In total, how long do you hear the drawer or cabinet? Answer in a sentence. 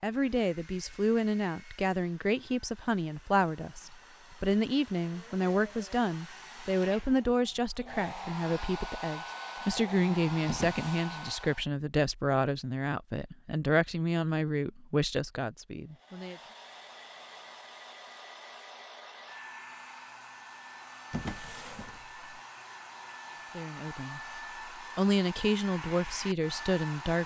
The drawer or cabinet can be heard for 2 seconds in total.